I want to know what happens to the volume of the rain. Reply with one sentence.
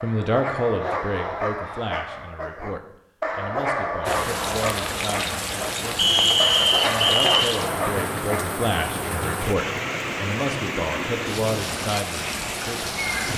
The loudness of the rain stays about the same.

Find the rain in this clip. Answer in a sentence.
The rain can be heard from 4.0 to 13.3 s.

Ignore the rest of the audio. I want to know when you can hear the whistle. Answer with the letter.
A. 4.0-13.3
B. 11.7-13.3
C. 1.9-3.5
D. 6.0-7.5
D.